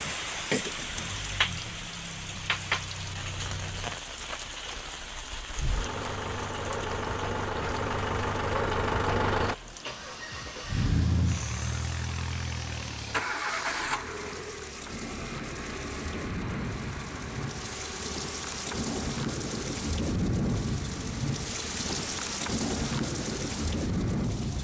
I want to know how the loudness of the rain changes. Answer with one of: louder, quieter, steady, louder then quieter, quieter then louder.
quieter then louder.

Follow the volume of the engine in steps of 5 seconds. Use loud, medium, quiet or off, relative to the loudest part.
quiet, loud, loud, medium, quiet.